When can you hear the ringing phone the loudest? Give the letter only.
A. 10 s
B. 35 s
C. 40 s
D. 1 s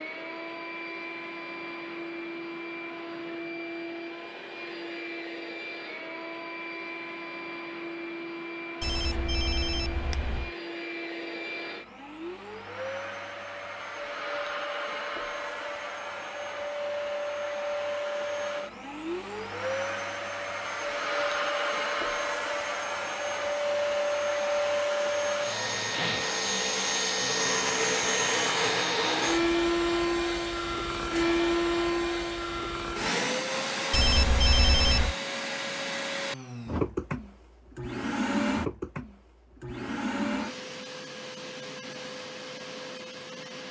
B.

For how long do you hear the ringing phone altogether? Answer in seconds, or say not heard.
3 s.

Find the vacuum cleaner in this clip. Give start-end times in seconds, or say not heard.
0.0-43.6.